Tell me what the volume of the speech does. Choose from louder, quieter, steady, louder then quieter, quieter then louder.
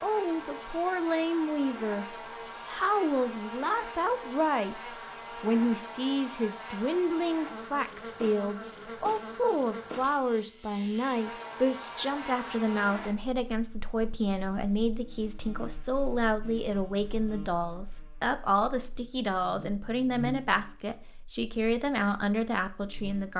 steady.